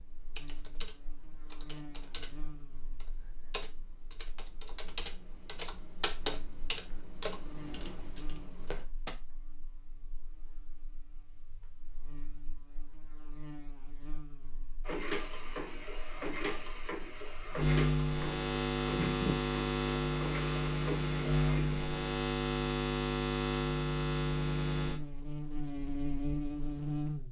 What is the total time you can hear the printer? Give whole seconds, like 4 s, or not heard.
7 s.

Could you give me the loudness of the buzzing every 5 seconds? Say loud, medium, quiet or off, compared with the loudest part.
quiet, quiet, quiet, loud, loud, medium.